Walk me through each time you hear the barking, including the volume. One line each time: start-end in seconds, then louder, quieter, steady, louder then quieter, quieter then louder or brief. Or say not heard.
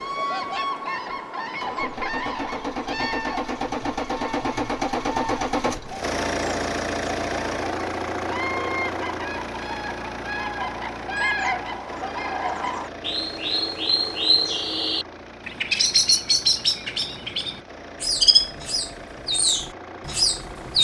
not heard.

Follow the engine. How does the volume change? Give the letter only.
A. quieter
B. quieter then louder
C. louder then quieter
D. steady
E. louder
A.